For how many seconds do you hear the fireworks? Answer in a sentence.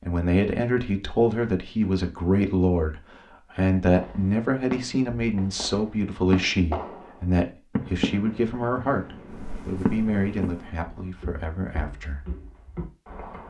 You can hear the fireworks for 7 seconds altogether.